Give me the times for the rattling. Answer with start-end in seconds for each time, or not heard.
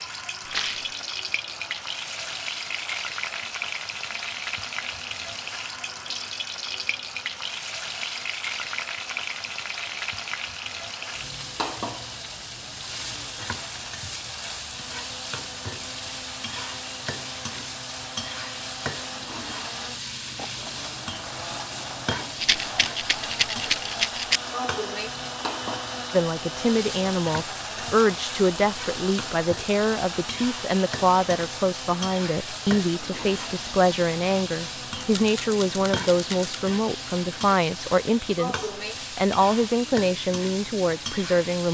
0.5-0.9, 22.4-24.4, 35.0-36.5.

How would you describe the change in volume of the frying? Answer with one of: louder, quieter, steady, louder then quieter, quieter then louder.
steady.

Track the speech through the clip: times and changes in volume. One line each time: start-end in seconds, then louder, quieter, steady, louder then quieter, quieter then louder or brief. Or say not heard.
26.1-41.6 steady.